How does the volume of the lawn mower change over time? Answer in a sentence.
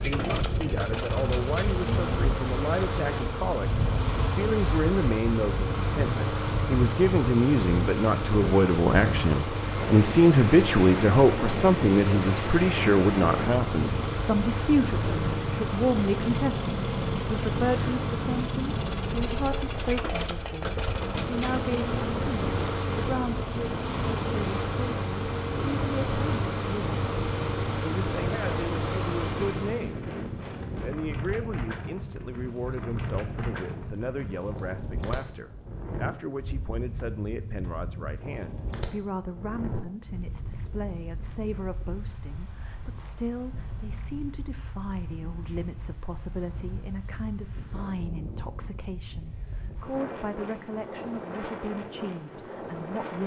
The loudness of the lawn mower stays about the same.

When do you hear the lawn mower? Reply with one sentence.
The lawn mower can be heard from 0.0 to 29.9 s.